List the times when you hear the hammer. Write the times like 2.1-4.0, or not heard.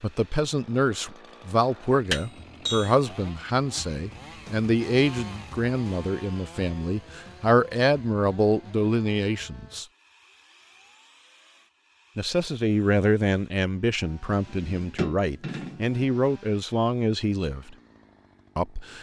2.1-3.0, 14.3-15.8.